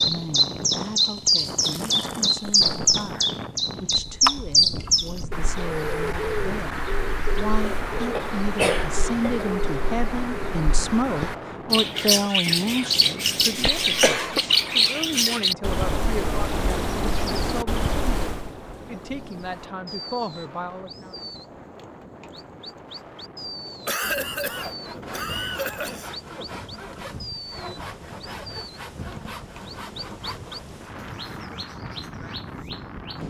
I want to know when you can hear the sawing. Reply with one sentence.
The sawing can be heard from 24.0 to 31.1 s.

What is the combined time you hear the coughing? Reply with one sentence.
The coughing can be heard for 5 seconds in total.